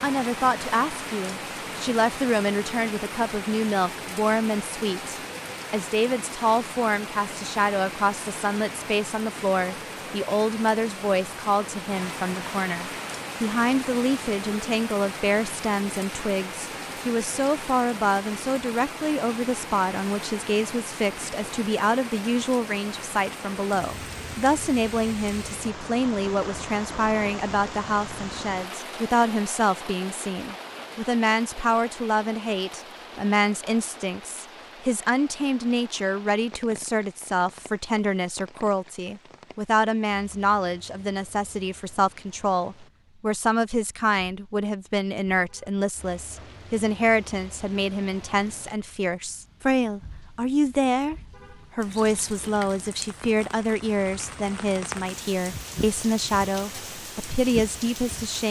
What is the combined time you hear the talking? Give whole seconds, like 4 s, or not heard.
58 s.